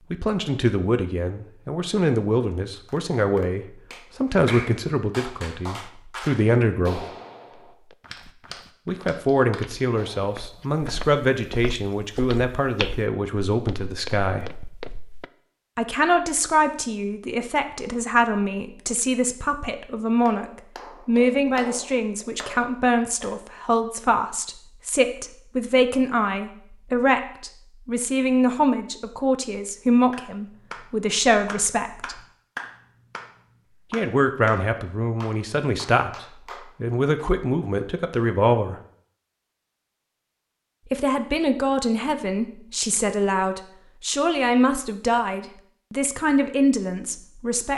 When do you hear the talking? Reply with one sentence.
You can hear the talking from 0.1 to 7.0 s, from 8.8 to 14.6 s, from 15.8 to 20.4 s, from 21.1 to 32.2 s, from 33.9 to 38.8 s and from 40.9 to 47.7 s.